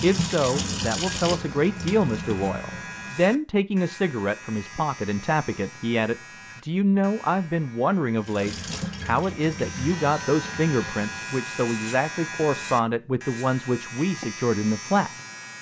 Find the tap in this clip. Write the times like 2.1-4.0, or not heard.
0.0-3.2, 8.2-11.1.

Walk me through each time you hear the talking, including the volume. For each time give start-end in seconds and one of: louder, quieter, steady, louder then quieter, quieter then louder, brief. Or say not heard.
0.0-15.1 steady.